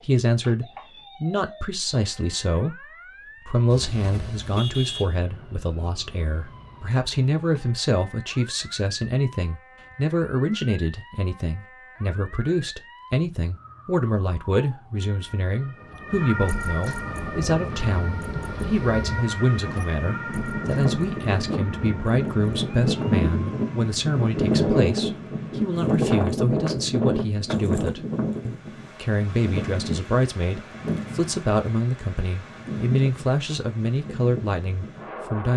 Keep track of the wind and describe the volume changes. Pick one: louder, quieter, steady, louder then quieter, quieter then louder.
louder then quieter.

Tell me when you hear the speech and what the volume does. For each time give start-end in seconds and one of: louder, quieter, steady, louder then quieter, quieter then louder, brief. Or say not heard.
0.0-35.5 steady.